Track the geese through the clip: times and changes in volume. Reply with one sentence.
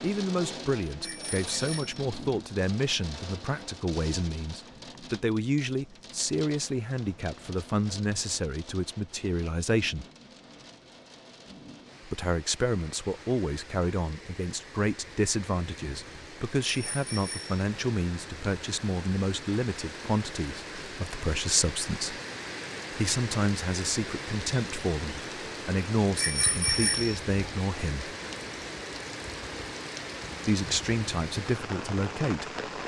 The geese can't be heard in this clip.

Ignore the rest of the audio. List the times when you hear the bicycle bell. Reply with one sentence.
You can hear the bicycle bell from 1.0 to 2.0 s, from 16.7 to 17.6 s and from 26.1 to 27.2 s.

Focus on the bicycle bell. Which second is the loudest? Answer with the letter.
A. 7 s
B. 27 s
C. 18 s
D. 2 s
B.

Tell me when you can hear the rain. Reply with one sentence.
The rain can be heard from 0.0 to 32.8 s.